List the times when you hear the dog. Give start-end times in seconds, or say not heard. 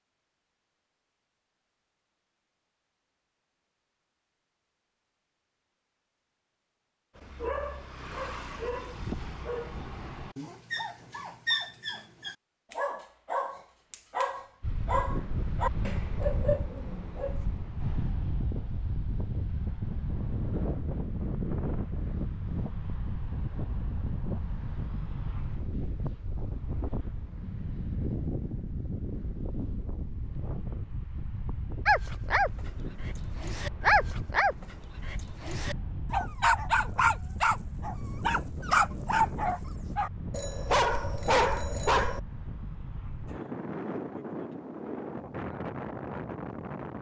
7.2-17.5, 31.9-42.2.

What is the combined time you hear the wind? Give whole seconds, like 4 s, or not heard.
32 s.